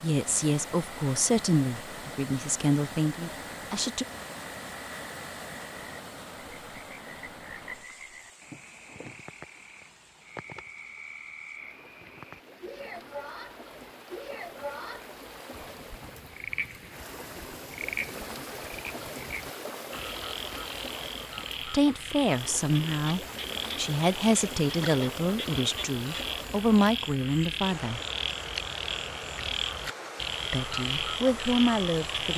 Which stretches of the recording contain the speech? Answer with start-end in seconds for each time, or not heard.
0.0-4.0, 21.7-28.0, 30.5-32.3.